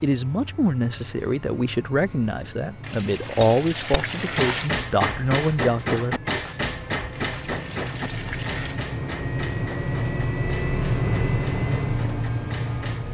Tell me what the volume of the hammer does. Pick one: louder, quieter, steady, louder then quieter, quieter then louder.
quieter.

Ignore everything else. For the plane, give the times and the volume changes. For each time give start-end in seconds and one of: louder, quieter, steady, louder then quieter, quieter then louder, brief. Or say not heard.
0.0-13.0 louder.